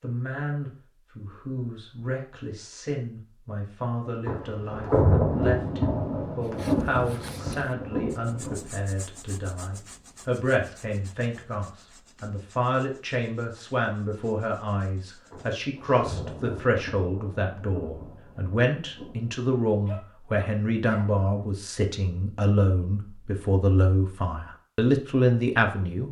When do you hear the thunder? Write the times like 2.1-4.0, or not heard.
4.2-8.6, 15.3-19.4.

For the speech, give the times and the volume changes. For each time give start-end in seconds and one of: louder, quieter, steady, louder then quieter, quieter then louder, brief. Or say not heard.
0.0-26.0 louder.